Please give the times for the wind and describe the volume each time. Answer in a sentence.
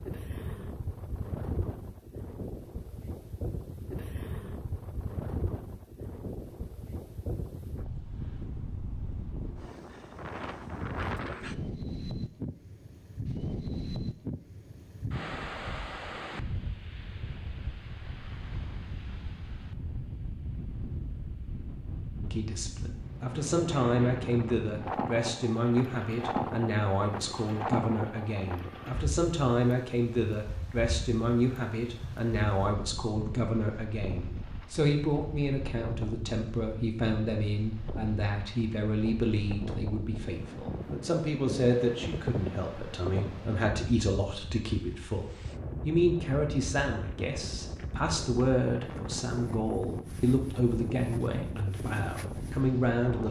The wind can be heard from 0.0 to 53.2 s, at a steady volume.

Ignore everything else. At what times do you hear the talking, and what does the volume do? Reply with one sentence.
The talking can be heard from 22.2 to 53.2 s, at a steady volume.